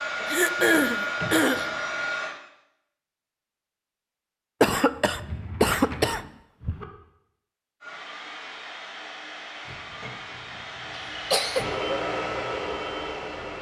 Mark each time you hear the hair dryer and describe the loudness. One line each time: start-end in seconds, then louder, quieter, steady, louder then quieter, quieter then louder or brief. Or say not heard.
0.0-2.4 brief
7.8-13.5 louder.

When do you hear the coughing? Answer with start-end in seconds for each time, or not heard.
0.2-1.6, 4.6-6.8, 11.2-11.8.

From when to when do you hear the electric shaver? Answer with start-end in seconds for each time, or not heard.
not heard.